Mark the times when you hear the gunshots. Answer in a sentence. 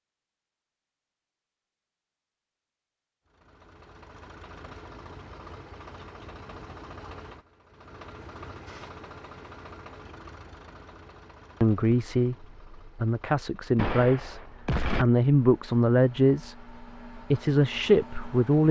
The gunshots can be heard from 13.8 to 15.1 s.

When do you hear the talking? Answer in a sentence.
The talking can be heard from 11.6 to 18.6 s.